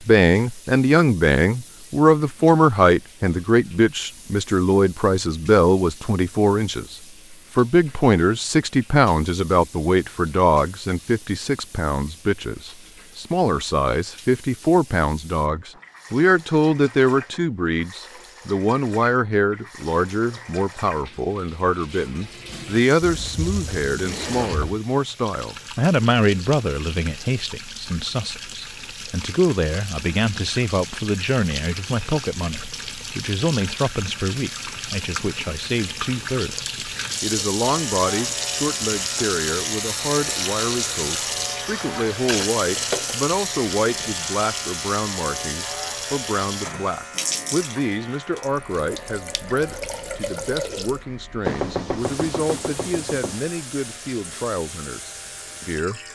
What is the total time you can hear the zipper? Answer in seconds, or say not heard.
2 s.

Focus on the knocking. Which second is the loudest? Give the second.
52 s.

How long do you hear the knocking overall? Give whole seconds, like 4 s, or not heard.
2 s.